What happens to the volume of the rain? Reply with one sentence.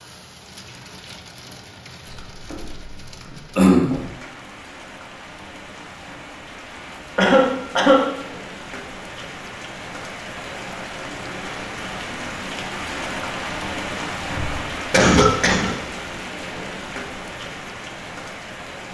The volume of the rain goes up.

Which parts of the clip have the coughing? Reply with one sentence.
You can hear the coughing from 2.0 to 4.0 s, from 7.2 to 8.1 s and from 14.2 to 15.7 s.